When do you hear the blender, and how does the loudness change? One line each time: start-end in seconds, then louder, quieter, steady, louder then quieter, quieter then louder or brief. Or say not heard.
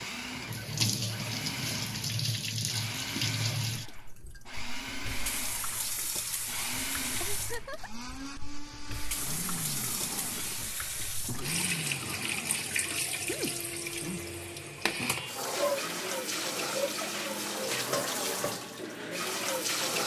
0.0-20.0 steady.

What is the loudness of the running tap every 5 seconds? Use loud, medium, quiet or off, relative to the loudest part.
loud, medium, loud, loud.